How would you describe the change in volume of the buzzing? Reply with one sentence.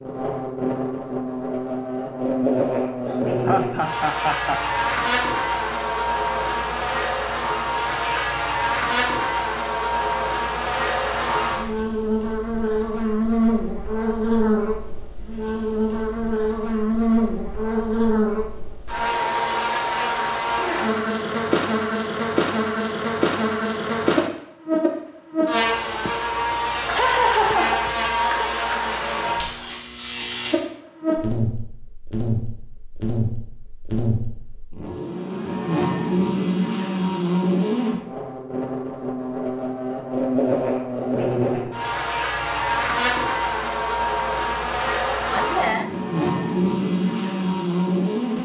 The volume of the buzzing stays about the same.